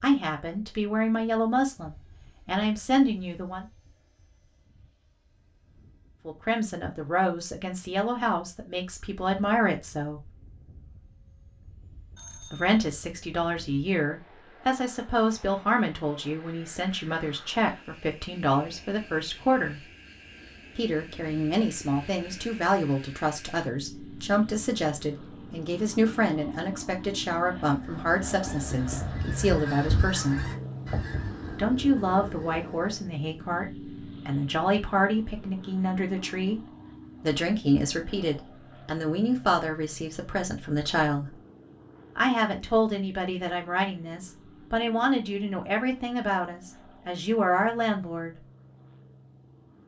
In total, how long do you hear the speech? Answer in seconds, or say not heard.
41 s.